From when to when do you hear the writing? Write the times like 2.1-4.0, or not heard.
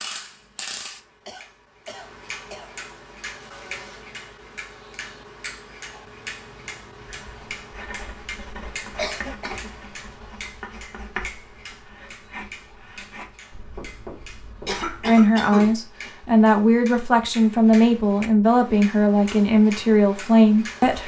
7.0-15.2.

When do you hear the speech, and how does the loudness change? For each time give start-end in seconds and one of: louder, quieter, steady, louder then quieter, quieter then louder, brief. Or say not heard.
15.0-21.0 steady.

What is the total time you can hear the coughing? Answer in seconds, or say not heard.
4 s.